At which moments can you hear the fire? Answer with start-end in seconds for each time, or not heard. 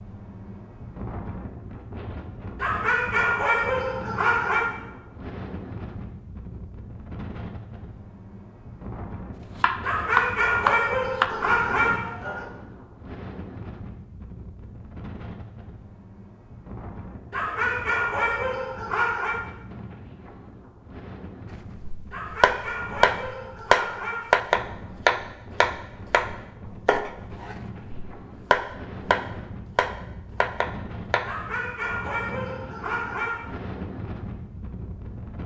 not heard.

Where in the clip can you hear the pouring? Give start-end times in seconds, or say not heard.
not heard.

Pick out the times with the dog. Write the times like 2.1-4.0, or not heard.
2.5-4.7, 9.8-12.4, 17.3-19.4, 22.1-24.5, 31.2-33.5.